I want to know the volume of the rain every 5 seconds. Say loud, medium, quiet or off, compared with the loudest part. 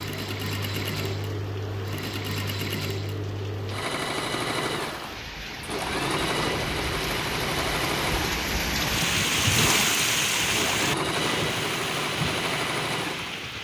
quiet, loud, loud.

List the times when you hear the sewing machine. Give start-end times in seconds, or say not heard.
0.0-13.4.